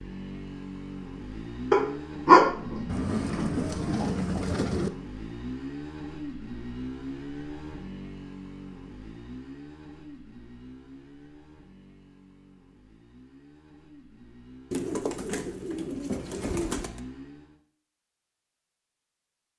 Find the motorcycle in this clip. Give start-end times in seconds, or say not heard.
0.0-17.6.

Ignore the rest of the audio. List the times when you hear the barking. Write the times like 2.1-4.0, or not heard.
1.7-3.5.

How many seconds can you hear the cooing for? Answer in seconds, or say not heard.
4 s.